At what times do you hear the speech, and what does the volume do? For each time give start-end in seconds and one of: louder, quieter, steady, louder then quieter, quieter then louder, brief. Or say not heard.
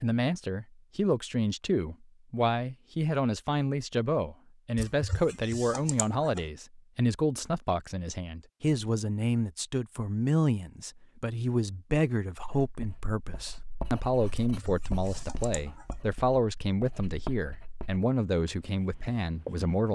0.0-19.9 steady.